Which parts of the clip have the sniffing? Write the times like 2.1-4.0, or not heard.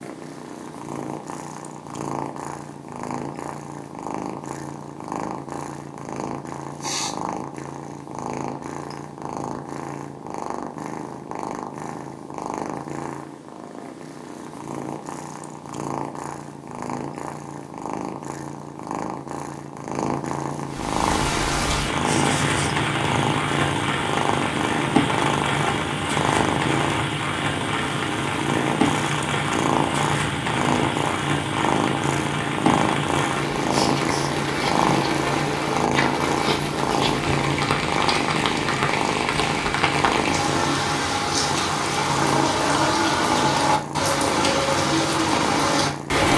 6.8-7.2, 22.0-22.8, 33.7-34.4.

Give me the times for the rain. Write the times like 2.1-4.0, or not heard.
20.6-46.3.